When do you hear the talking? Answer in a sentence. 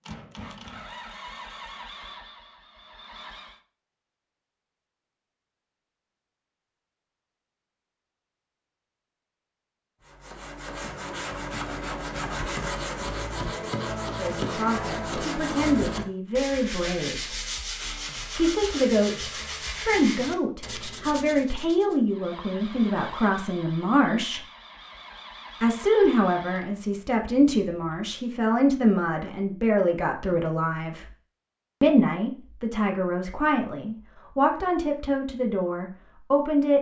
The talking can be heard from 14.1 to 17.4 s, from 18.4 to 24.4 s, from 25.6 to 31.1 s and from 31.8 to 36.7 s.